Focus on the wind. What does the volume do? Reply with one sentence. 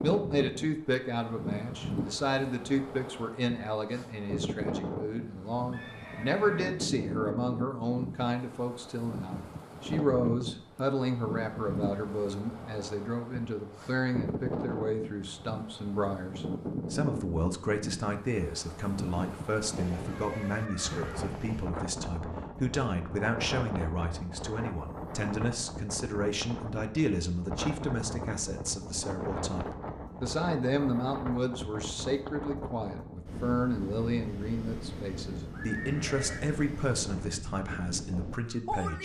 The loudness of the wind stays about the same.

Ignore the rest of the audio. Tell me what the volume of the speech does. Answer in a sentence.
The volume of the speech stays about the same.